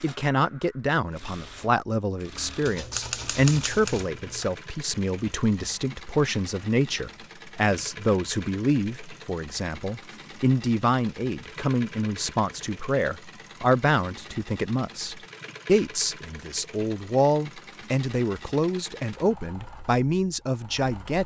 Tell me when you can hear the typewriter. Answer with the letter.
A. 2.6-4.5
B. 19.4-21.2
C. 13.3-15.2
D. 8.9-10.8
A.